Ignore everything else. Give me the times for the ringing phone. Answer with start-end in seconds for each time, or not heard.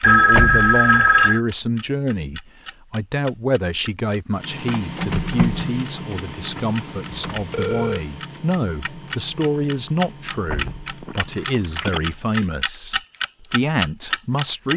0.0-1.4, 7.1-8.0, 10.7-12.0.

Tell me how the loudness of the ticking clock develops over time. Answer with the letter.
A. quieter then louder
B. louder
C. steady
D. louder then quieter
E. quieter
B.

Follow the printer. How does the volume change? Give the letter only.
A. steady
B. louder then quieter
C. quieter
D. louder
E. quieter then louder
C.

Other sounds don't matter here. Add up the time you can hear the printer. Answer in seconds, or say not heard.
8 s.